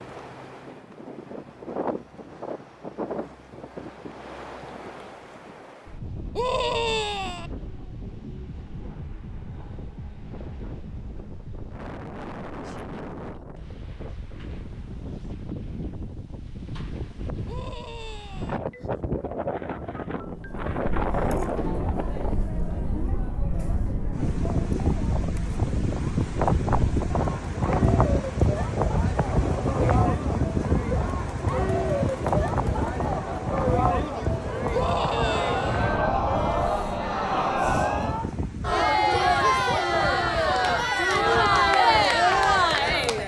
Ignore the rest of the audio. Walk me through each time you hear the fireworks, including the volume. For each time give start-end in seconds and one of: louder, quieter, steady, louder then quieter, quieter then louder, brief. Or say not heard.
not heard.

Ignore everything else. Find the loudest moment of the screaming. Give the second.
7 s.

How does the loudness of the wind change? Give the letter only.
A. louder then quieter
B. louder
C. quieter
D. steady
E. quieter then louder
A.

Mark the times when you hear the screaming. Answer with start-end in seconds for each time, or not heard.
6.3-7.5, 17.4-18.6, 34.7-35.9.